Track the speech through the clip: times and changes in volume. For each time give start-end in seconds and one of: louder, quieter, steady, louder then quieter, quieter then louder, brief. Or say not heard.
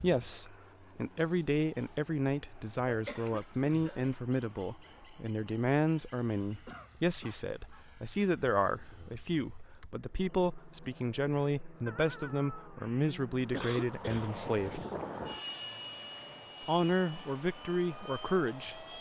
0.0-14.8 steady
16.6-18.9 brief.